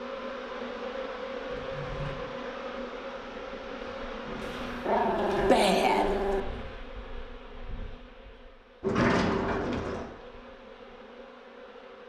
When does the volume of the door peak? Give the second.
9 s.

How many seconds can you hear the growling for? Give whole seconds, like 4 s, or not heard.
2 s.